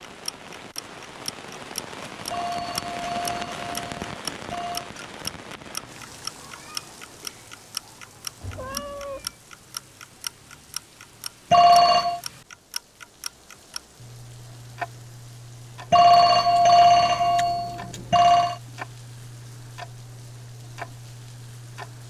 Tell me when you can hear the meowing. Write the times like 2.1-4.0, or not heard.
8.4-9.3.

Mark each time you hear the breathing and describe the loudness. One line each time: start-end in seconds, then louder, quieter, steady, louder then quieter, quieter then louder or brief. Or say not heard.
not heard.